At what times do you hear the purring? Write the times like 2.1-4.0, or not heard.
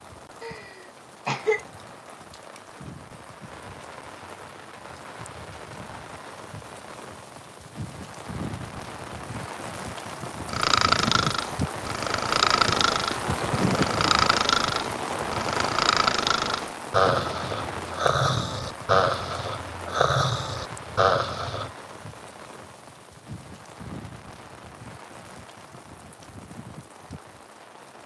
not heard.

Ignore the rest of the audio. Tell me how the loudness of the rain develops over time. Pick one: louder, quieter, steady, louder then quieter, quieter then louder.
louder then quieter.